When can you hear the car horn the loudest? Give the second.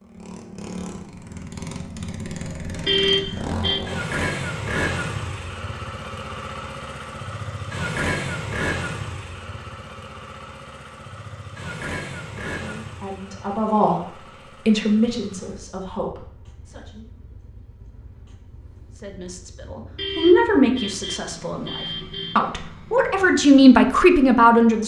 3 s.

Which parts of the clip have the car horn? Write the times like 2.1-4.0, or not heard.
2.9-3.9, 19.9-22.4.